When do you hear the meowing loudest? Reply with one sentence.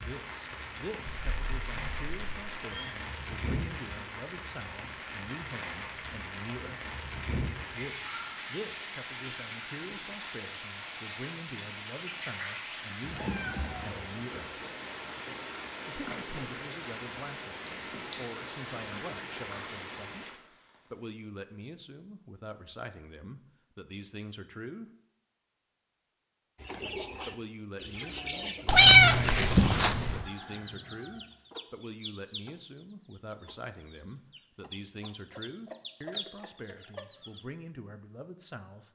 The loudest moment of the meowing is at 29 seconds.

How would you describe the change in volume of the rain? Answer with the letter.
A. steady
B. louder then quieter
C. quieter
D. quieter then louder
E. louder
A.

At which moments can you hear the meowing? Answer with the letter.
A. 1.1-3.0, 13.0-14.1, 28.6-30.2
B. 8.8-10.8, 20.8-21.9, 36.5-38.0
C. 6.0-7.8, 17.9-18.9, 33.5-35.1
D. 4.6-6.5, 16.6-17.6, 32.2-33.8
A.